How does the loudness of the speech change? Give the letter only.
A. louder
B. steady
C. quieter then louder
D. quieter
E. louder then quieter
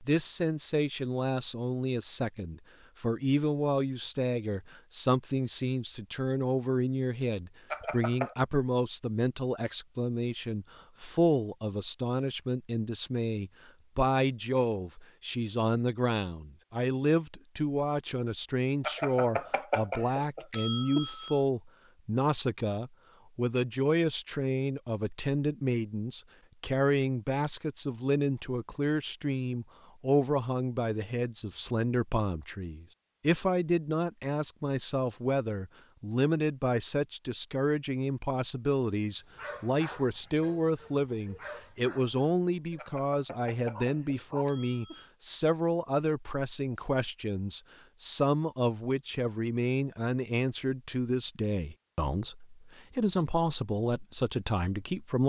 B.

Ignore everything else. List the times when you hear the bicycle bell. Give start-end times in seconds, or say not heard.
7.7-8.3, 18.8-21.4, 42.8-45.1.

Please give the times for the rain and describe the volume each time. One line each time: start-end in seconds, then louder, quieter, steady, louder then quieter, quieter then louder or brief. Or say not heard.
not heard.